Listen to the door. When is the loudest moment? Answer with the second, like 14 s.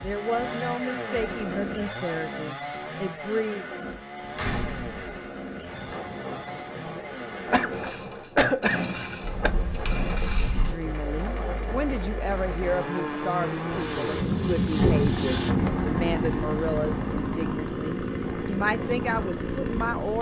15 s.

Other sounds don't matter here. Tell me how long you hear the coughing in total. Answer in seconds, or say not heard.
2 s.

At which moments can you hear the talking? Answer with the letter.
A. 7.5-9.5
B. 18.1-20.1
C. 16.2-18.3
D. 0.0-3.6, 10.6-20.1
D.